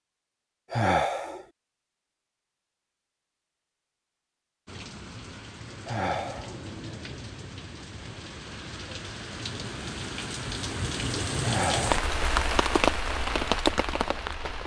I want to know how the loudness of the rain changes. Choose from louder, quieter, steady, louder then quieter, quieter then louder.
louder.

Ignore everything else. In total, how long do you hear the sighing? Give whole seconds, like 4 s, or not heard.
2 s.